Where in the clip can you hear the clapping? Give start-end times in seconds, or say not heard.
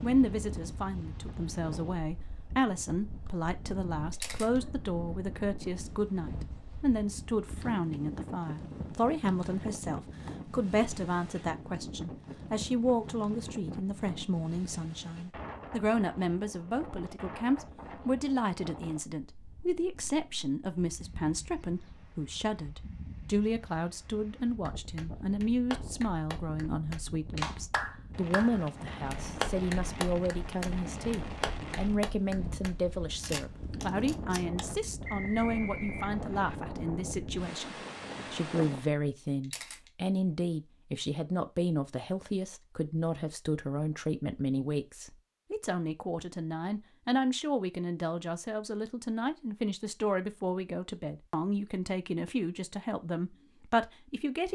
24.5-32.8.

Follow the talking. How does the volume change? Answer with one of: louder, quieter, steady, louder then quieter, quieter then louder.
steady.